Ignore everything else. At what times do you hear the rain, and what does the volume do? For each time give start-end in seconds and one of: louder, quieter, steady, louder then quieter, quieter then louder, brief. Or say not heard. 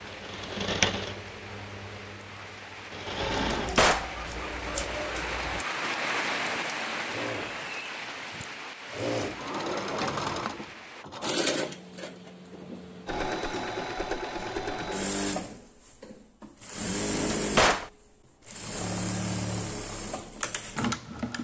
0.0-11.1 louder then quieter.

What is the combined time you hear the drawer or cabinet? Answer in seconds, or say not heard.
3 s.